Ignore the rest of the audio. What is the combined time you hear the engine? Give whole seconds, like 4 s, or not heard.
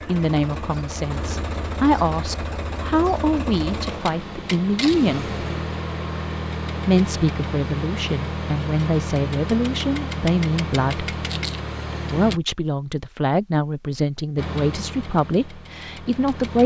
15 s.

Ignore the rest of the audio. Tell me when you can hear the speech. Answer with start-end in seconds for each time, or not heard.
0.1-5.3, 6.8-11.1, 12.1-16.6.